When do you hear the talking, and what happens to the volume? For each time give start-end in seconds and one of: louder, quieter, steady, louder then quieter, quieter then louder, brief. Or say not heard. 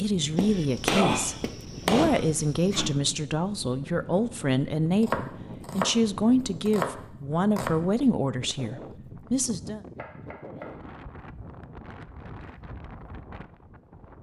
0.0-9.8 steady.